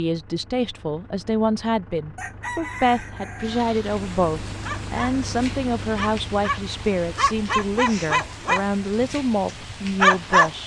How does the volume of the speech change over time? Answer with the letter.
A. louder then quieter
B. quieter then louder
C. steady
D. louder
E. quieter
C.